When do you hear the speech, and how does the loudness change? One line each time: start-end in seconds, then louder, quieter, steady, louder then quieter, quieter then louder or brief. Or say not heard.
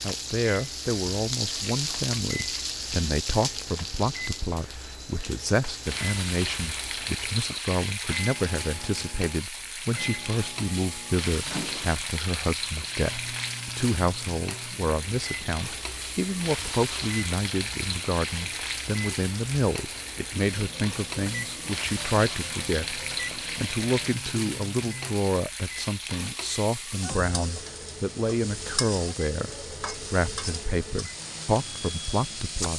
0.0-32.7 steady.